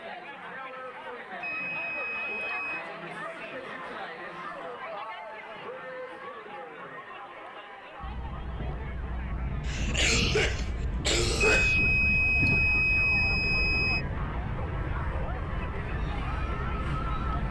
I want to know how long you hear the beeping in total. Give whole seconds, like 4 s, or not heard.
4 s.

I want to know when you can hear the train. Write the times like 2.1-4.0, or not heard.
8.0-17.4.